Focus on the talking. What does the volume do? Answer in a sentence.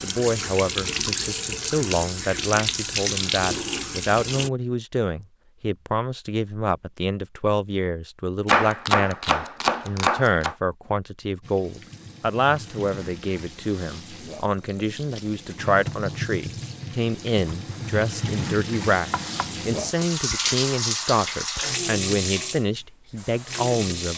The volume of the talking stays about the same.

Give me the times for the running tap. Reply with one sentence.
You can hear the running tap from 0.0 to 4.5 s and from 11.4 to 24.1 s.